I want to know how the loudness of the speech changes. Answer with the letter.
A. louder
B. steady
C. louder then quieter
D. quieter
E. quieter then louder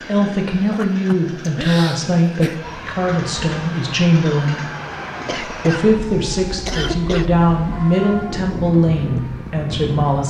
B.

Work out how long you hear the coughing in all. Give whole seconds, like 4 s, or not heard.
4 s.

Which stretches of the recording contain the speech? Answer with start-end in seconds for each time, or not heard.
0.1-4.7, 5.5-10.2.